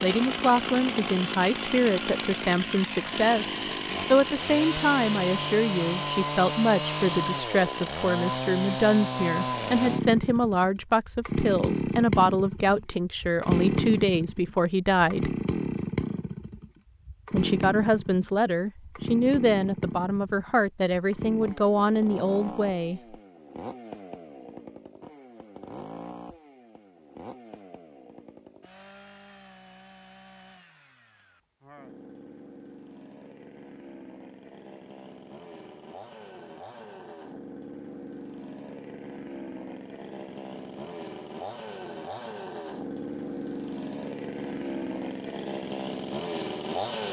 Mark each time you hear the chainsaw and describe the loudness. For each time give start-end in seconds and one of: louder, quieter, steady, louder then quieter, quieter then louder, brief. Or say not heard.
0.0-47.0 quieter then louder.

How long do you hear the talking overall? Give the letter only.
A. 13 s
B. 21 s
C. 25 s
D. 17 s
B.